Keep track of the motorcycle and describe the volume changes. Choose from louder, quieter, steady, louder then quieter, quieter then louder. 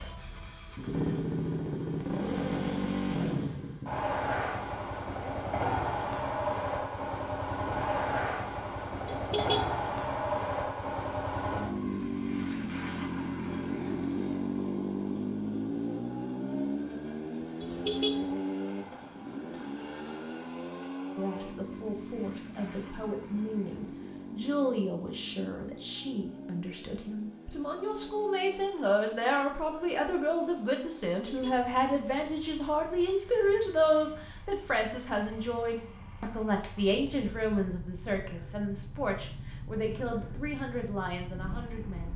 quieter.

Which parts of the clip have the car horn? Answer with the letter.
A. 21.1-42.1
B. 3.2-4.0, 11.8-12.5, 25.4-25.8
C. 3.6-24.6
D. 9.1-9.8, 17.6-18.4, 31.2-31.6
D.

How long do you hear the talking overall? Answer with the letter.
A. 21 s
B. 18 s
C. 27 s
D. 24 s
A.